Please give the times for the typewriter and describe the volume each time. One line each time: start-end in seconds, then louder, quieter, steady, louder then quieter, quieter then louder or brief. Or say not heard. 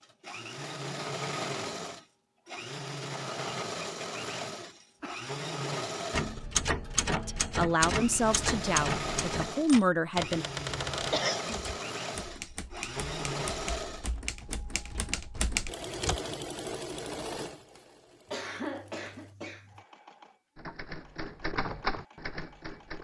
6.1-16.2 quieter then louder
20.6-22.9 brief.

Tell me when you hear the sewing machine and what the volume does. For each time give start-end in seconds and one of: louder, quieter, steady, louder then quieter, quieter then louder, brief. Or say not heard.
0.0-22.9 quieter.